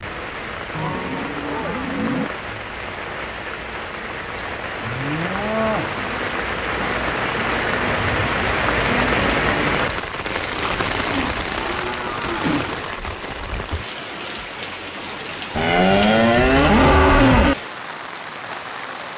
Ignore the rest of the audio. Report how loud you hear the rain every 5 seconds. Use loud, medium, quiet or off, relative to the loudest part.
medium, loud, medium, medium.